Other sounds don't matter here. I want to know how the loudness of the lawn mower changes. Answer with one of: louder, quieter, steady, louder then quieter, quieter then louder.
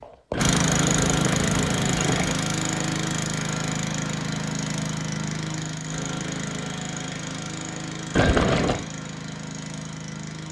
quieter.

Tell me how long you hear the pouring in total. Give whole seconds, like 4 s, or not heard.
3 s.